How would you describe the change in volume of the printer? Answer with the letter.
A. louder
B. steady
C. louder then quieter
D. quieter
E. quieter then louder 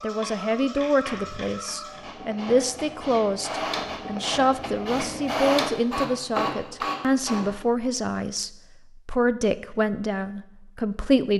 A.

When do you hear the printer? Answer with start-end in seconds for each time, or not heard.
0.0-7.6.